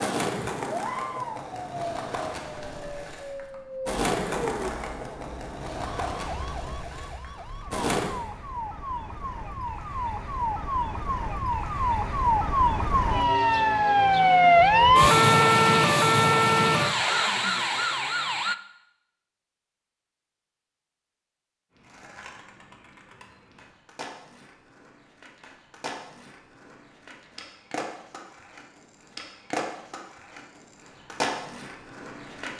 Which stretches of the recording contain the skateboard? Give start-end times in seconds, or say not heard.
0.0-8.2, 21.7-32.5.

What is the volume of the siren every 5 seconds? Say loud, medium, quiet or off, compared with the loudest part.
quiet, quiet, loud, loud, off, off, off.